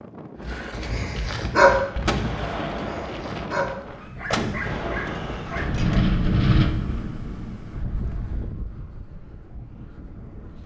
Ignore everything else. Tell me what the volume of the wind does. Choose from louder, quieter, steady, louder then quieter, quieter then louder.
louder then quieter.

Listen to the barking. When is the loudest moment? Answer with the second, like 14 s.
2 s.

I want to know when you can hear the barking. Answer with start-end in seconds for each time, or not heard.
0.5-5.9.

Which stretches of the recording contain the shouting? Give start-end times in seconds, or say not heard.
not heard.